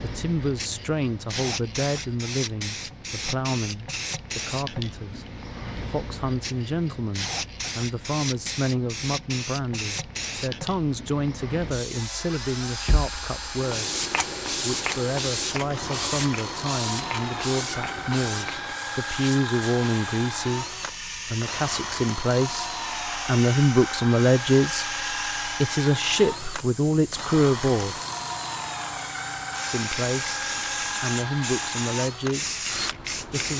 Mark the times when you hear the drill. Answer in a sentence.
You can hear the drill from 11.8 to 33.5 s.